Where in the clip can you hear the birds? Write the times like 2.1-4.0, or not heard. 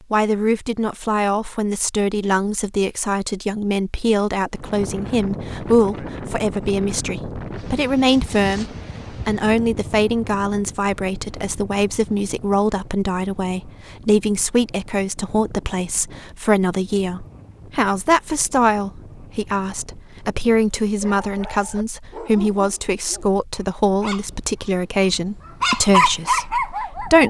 not heard.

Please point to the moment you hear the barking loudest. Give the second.
26 s.